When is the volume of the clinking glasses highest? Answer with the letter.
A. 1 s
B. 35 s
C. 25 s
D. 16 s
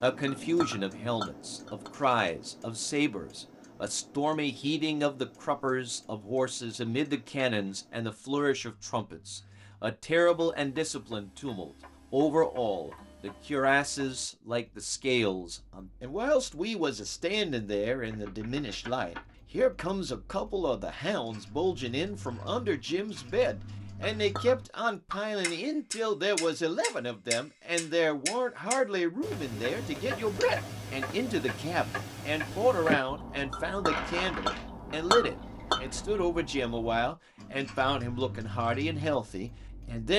B.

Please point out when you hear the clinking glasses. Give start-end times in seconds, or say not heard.
0.2-1.9, 24.0-24.6, 33.5-36.0.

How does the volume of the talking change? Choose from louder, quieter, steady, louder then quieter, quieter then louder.
steady.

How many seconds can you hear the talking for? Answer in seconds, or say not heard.
40 s.